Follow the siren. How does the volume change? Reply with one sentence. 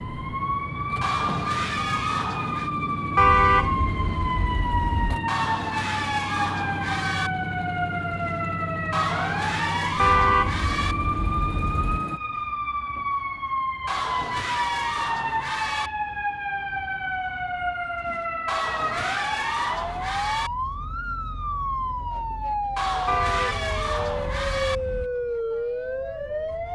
The loudness of the siren stays about the same.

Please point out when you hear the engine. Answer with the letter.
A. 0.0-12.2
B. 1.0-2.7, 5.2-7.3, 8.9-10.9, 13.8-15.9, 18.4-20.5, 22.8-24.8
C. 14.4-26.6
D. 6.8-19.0
A.